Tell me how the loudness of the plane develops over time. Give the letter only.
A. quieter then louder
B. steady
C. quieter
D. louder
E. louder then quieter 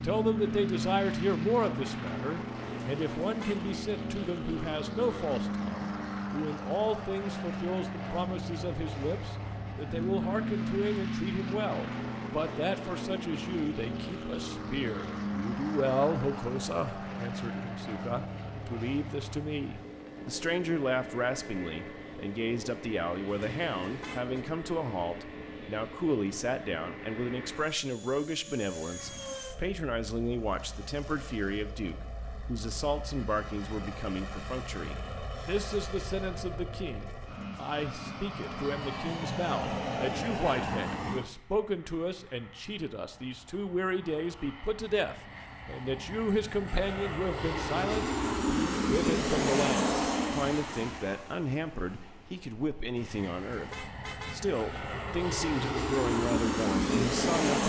A.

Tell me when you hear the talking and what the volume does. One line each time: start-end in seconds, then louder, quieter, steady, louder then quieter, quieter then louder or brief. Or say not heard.
0.0-57.6 steady.